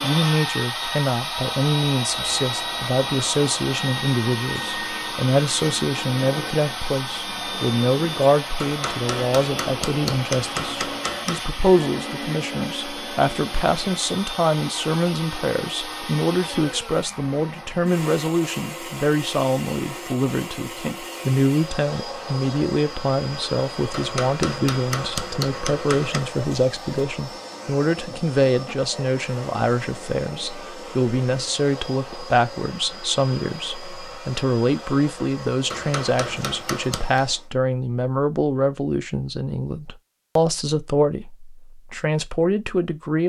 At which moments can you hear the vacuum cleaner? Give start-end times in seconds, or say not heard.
0.0-37.5.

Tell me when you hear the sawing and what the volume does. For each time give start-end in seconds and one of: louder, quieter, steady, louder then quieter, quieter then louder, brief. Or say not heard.
not heard.